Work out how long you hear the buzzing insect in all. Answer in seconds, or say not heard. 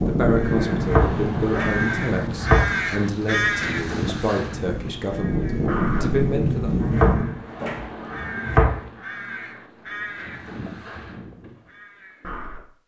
not heard.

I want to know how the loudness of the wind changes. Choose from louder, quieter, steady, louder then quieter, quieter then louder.
quieter then louder.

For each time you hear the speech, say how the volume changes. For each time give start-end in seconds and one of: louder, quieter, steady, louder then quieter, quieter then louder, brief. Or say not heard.
0.0-7.0 steady.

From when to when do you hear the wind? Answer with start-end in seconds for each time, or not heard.
0.0-7.4.